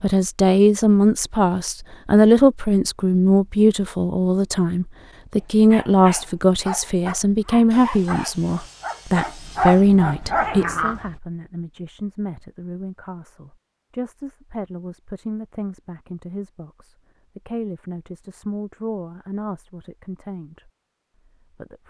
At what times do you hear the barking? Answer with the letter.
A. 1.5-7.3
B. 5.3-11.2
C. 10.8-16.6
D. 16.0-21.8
B.